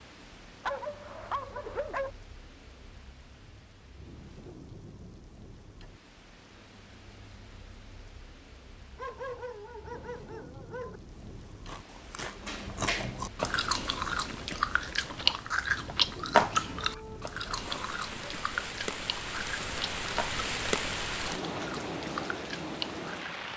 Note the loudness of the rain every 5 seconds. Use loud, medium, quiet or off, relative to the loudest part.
quiet, quiet, quiet, medium, loud.